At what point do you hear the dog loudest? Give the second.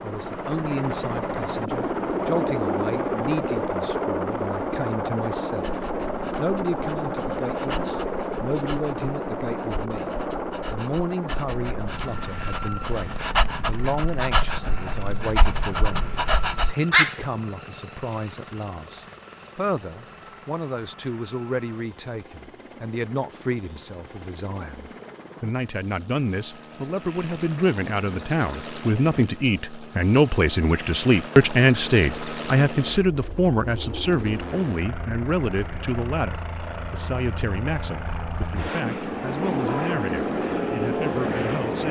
17 s.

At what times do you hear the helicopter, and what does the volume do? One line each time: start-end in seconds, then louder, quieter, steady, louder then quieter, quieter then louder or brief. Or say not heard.
0.0-41.8 quieter then louder.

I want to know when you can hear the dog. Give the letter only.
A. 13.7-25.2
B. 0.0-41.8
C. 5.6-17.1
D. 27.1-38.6
C.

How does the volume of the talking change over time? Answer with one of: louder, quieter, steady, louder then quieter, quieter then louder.
louder then quieter.